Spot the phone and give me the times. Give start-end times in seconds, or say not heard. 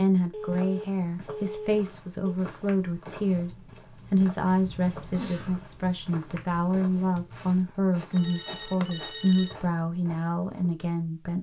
0.3-2.4, 8.1-9.7.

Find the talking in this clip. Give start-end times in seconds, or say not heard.
0.0-11.3.